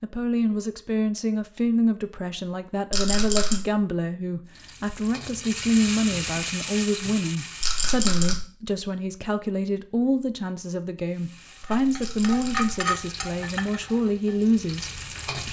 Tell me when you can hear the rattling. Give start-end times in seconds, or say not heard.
2.9-3.6, 7.6-8.3, 12.0-12.8.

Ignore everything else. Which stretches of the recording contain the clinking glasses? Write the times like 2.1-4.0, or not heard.
not heard.